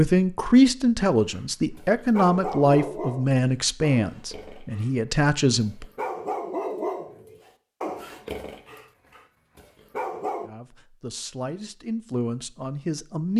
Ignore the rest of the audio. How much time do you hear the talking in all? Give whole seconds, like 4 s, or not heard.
9 s.